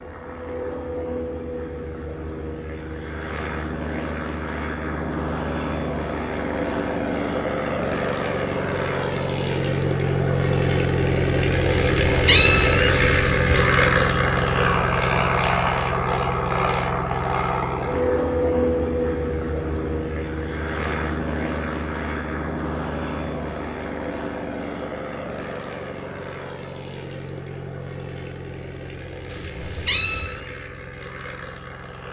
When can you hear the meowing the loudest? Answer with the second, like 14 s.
12 s.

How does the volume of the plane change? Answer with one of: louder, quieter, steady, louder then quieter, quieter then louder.
louder then quieter.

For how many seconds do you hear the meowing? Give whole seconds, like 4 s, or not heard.
3 s.